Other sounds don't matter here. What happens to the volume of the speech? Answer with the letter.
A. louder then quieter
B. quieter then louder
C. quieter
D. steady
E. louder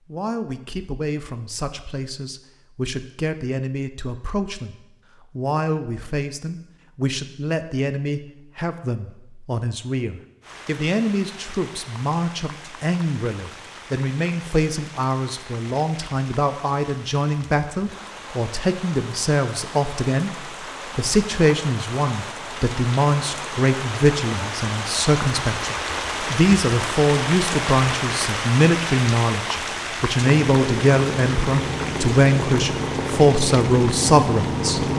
E.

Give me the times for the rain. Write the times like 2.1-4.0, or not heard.
10.4-34.9.